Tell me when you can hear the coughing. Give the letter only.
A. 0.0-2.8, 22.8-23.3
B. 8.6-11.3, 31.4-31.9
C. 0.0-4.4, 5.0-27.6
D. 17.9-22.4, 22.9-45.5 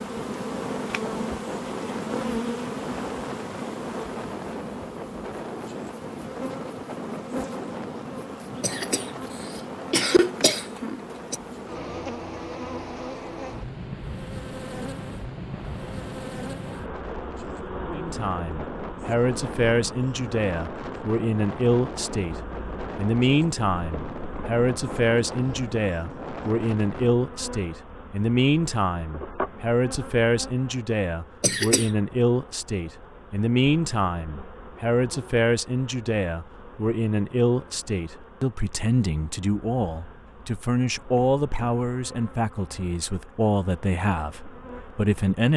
B.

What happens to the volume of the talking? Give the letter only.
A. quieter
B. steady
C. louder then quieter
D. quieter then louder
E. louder
B.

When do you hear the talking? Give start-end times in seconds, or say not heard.
17.9-22.4, 22.9-45.5.